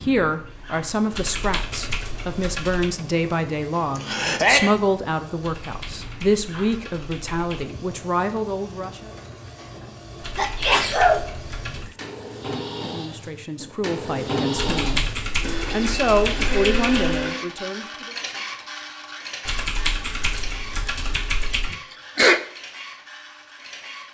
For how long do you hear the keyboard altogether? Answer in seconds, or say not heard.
11 s.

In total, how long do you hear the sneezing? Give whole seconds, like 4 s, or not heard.
3 s.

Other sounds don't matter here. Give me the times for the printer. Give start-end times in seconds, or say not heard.
0.0-24.0.